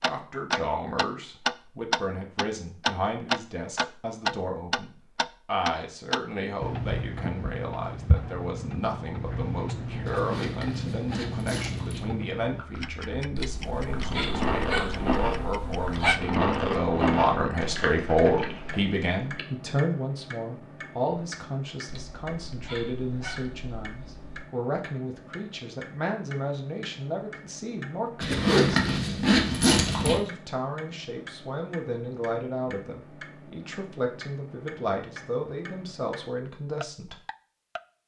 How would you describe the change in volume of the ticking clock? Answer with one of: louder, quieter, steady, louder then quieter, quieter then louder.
quieter.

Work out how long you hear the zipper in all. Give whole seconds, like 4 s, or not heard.
4 s.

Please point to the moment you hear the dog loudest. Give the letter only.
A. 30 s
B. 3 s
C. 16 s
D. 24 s
C.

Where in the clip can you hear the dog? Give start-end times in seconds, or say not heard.
13.3-16.2, 21.9-24.5.